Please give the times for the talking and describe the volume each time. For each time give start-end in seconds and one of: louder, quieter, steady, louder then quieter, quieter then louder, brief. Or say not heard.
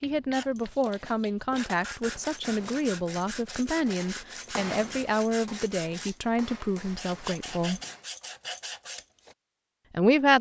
0.0-7.8 steady
9.9-10.3 brief.